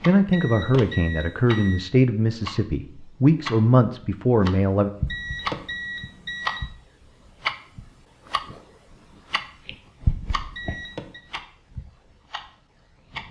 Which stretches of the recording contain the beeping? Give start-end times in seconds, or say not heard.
0.3-1.9, 5.0-6.7, 10.5-11.2.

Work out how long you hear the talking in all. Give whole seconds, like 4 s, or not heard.
5 s.